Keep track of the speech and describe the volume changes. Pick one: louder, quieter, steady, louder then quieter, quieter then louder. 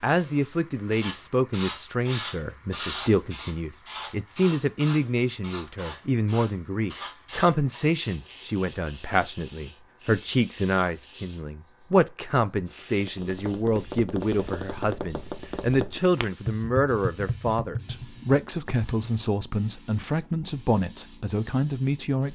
steady.